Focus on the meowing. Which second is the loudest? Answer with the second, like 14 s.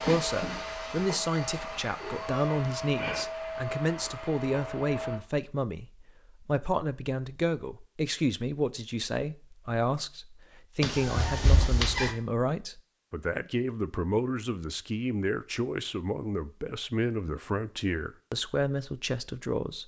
12 s.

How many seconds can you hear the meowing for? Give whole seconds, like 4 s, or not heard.
3 s.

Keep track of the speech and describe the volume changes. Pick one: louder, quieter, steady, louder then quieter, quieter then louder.
steady.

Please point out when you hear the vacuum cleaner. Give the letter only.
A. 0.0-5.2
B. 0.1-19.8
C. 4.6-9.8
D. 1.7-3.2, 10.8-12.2
A.